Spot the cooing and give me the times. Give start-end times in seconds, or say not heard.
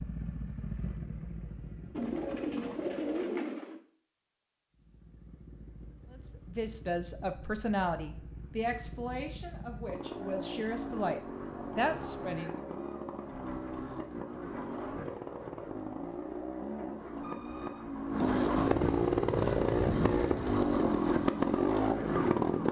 1.9-3.8, 18.6-20.6.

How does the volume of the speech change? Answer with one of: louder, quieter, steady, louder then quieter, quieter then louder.
quieter then louder.